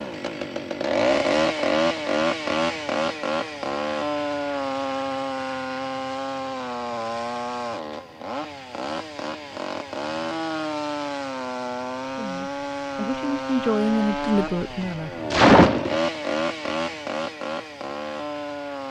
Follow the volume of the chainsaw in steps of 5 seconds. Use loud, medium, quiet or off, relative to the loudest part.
loud, medium, medium, loud.